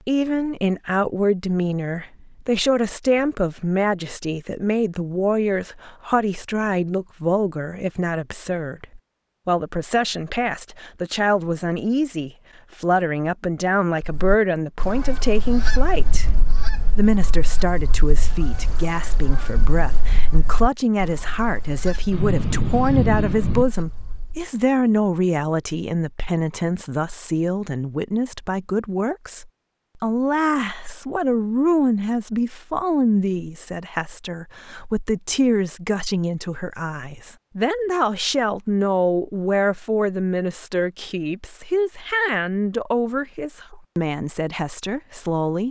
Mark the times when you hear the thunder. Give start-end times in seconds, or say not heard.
22.1-23.6.